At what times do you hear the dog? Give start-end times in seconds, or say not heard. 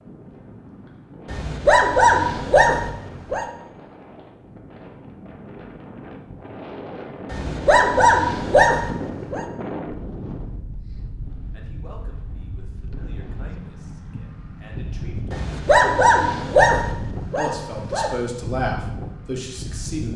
1.2-3.5, 7.3-9.4, 15.3-18.1.